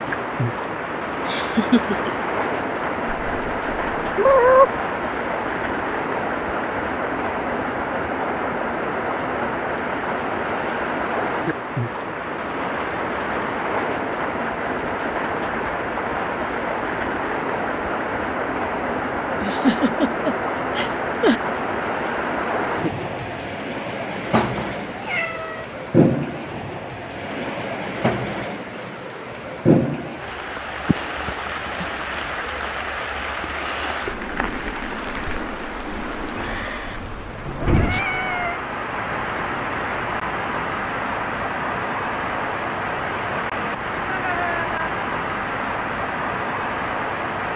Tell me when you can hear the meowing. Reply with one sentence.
The meowing can be heard from 3.0 to 4.7 s, from 24.4 to 25.6 s and from 37.6 to 38.6 s.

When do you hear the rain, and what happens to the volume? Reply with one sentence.
You can hear the rain from 0.0 to 47.5 s, at a steady volume.